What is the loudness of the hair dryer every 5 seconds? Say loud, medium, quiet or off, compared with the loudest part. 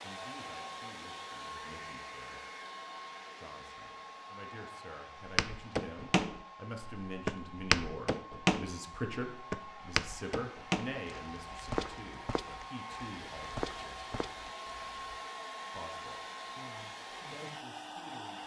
loud, medium, loud, loud.